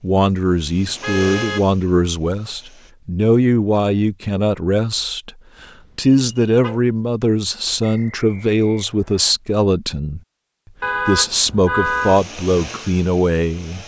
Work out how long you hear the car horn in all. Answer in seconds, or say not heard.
3 s.